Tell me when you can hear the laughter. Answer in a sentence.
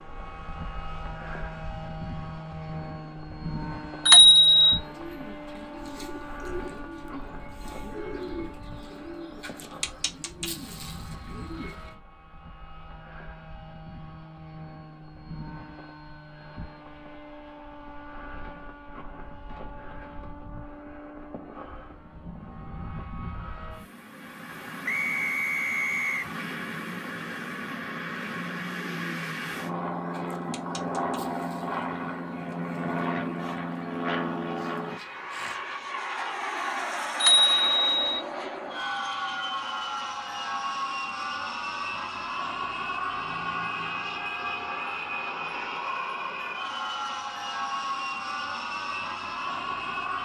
The laughter can't be heard in this clip.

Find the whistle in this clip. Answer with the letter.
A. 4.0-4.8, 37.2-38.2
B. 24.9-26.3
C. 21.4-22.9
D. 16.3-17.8
B.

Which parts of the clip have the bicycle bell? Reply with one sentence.
The bicycle bell can be heard from 4.0 to 4.8 s and from 37.2 to 38.2 s.